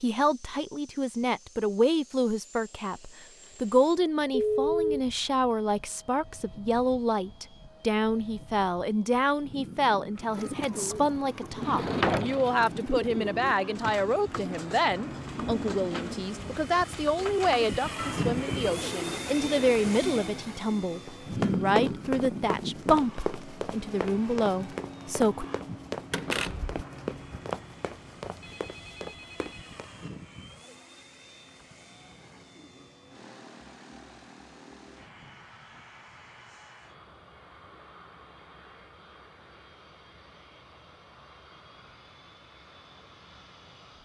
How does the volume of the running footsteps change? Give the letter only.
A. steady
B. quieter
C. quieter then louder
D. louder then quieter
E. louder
B.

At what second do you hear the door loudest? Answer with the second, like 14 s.
12 s.